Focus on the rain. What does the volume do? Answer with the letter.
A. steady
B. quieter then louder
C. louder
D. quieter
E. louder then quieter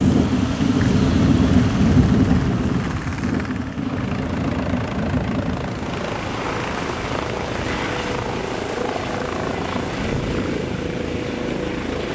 D.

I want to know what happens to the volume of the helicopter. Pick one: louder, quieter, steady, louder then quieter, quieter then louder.
louder.